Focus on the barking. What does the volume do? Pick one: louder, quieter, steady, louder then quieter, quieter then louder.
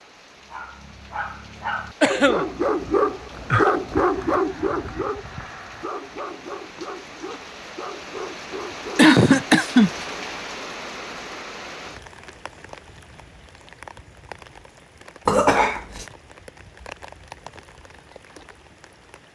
louder then quieter.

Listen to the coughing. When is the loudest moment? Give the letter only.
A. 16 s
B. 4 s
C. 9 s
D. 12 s
C.